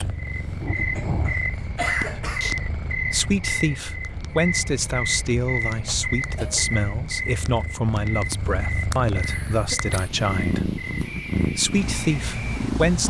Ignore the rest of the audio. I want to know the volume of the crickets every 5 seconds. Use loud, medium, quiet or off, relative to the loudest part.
loud, loud, medium.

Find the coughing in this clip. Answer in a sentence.
The coughing can be heard from 0.8 to 2.5 s, from 5.8 to 6.8 s and from 9.2 to 9.9 s.